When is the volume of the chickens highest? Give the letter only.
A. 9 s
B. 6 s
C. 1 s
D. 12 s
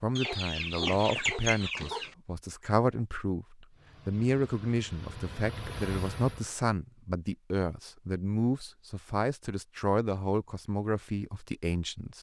C.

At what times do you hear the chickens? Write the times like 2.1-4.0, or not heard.
0.1-2.1.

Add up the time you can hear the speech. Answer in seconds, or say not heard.
12 s.